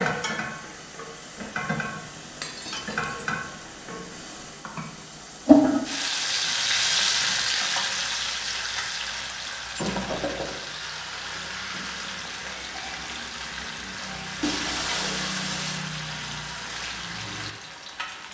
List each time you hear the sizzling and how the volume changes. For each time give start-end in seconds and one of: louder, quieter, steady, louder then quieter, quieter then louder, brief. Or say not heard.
0.0-18.2 louder then quieter.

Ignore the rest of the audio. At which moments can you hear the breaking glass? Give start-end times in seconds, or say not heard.
2.4-3.3, 9.7-10.6, 14.4-15.8.